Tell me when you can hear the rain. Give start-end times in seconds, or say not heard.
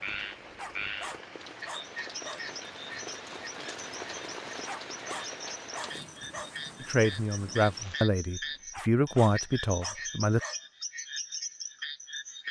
0.0-8.1.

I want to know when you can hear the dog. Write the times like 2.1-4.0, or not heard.
0.6-2.4, 4.7-6.5, 8.7-10.6.